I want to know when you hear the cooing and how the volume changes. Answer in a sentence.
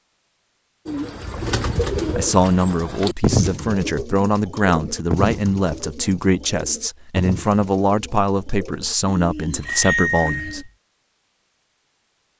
The cooing can be heard from 0.8 to 10.7 s, getting quieter.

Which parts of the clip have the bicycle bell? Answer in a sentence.
The bicycle bell can be heard from 9.7 to 10.7 s.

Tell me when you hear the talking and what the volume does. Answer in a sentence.
You can hear the talking from 2.1 to 10.7 s, at a steady volume.